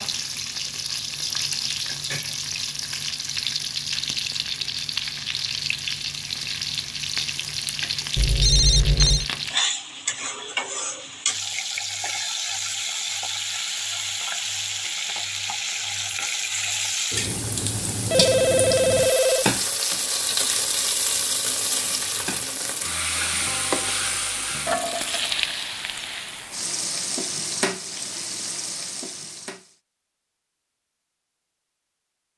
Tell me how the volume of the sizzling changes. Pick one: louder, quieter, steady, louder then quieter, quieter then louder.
steady.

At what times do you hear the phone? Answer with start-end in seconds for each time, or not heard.
8.2-9.2, 18.1-19.5.